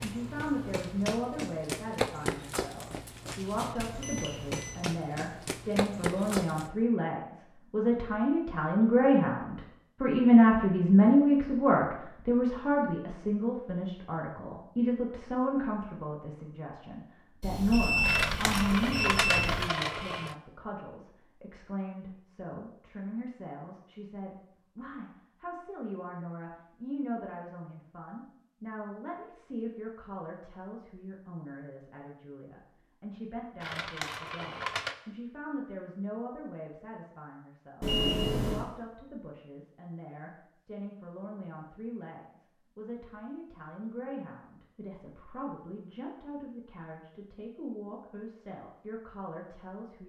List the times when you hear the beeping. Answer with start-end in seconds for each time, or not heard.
3.8-4.8, 17.4-19.7, 37.8-38.6.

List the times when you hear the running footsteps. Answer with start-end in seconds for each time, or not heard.
0.0-6.7.